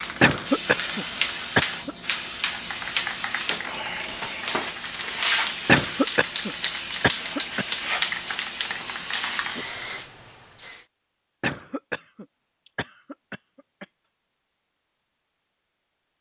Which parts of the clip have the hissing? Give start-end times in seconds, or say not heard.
0.0-10.8.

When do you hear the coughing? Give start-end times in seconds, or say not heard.
0.2-1.9, 5.7-7.7, 11.4-13.8.